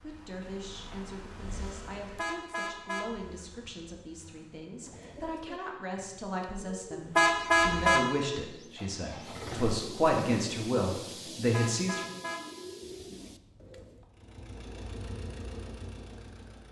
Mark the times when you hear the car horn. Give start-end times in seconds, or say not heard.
2.1-3.8, 7.2-8.1, 11.5-14.1.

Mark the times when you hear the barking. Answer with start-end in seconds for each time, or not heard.
not heard.